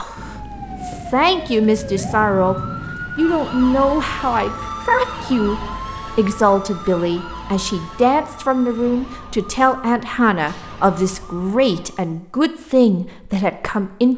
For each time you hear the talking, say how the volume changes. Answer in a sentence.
The talking can be heard from 0.0 to 14.1 s, at a steady volume.